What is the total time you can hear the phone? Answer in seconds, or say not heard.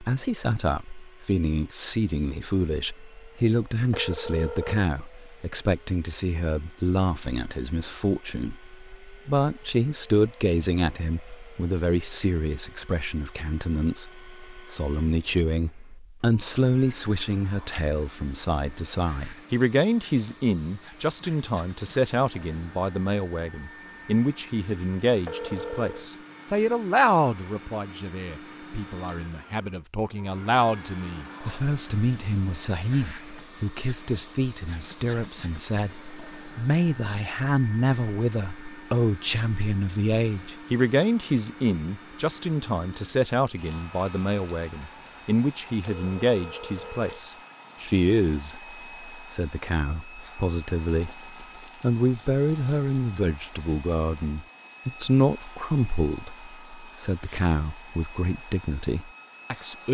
3 s.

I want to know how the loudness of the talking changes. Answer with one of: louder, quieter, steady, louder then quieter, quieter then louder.
steady.